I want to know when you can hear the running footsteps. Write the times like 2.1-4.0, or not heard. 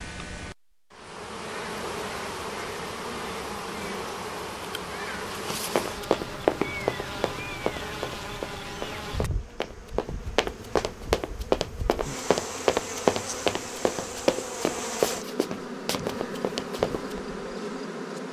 5.8-17.2.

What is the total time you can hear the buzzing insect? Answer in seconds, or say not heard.
18 s.